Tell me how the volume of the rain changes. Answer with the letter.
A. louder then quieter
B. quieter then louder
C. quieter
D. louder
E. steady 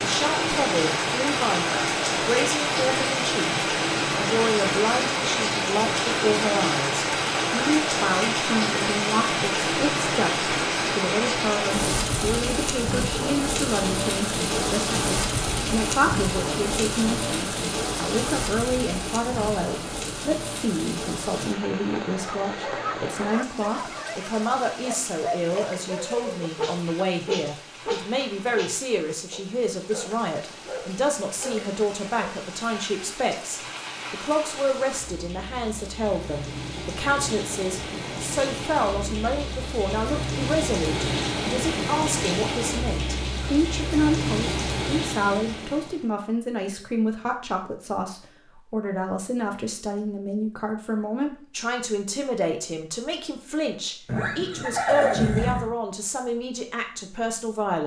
B.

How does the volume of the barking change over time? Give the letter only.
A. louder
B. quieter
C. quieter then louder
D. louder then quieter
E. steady
D.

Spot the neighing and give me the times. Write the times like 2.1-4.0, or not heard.
54.0-55.7.